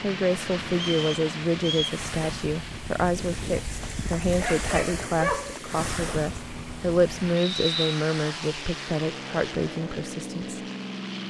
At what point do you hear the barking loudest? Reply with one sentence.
The volume of the barking peaks at 5 seconds.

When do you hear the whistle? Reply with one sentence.
The whistle can be heard from 0.7 to 2.0 s and from 7.3 to 8.0 s.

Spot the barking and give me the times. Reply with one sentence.
The barking can be heard from 3.8 to 5.6 s.